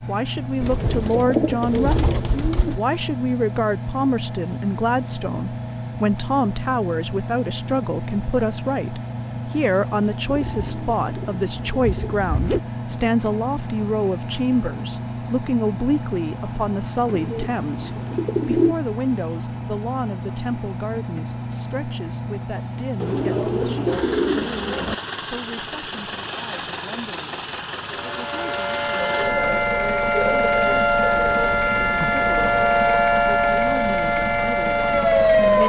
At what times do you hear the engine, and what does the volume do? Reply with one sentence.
The engine can be heard from 0.0 to 35.6 s, at a steady volume.